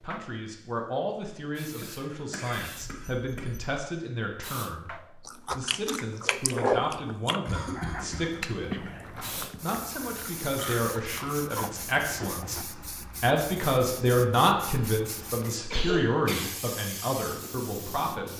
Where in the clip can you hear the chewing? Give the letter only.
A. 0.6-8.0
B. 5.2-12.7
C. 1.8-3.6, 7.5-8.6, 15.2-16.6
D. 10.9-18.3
B.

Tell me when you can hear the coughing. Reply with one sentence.
The coughing can be heard from 1.8 to 3.6 s, from 7.5 to 8.6 s and from 15.2 to 16.6 s.